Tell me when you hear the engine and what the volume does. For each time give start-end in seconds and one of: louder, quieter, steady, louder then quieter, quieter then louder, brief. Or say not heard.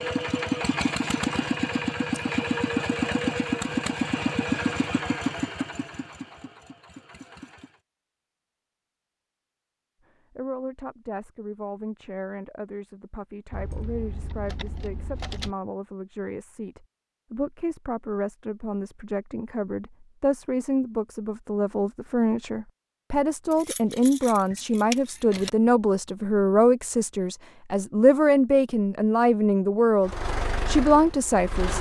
0.0-7.8 quieter
30.0-31.7 brief.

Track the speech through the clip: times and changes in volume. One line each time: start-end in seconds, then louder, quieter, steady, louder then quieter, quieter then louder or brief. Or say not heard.
10.3-31.7 louder.